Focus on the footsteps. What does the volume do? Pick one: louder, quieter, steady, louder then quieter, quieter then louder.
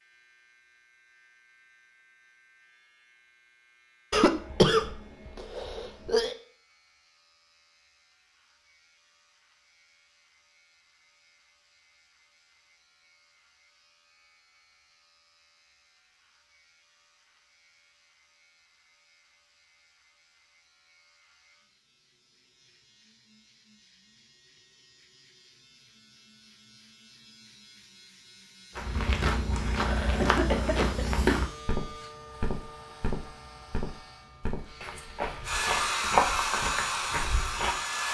quieter then louder.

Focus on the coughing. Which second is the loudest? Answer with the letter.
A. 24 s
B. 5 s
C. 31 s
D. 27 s
B.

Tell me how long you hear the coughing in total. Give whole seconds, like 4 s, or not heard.
3 s.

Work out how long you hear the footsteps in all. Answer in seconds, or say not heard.
9 s.